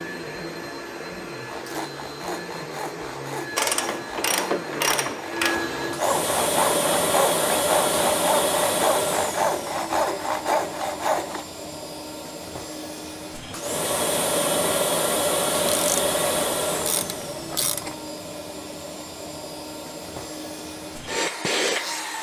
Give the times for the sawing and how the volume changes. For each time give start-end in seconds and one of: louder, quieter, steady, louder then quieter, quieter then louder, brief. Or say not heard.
1.4-11.4 louder.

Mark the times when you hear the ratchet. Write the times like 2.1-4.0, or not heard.
3.5-5.5, 15.7-17.9.